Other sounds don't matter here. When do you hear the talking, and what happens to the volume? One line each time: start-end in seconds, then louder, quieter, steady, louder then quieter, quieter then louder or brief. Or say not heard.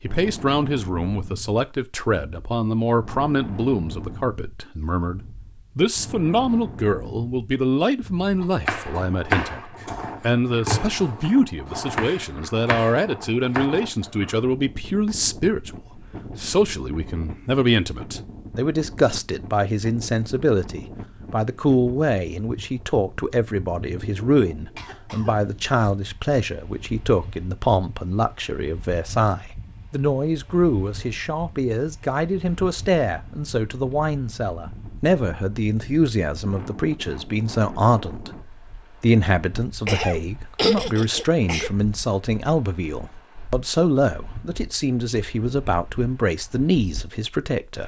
0.0-47.8 steady.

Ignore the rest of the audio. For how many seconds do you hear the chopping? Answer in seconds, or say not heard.
5 s.